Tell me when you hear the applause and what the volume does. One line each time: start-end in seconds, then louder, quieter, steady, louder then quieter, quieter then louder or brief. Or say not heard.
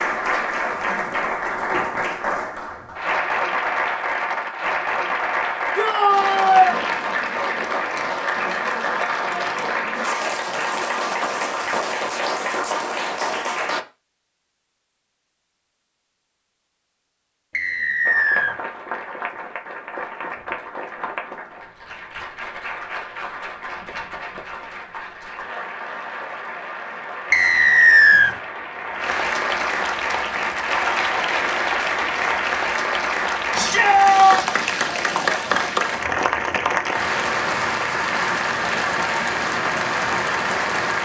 0.0-13.8 steady
18.1-40.9 louder.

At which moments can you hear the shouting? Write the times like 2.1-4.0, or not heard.
5.8-6.7, 33.5-34.5.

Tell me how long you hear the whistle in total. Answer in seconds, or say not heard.
2 s.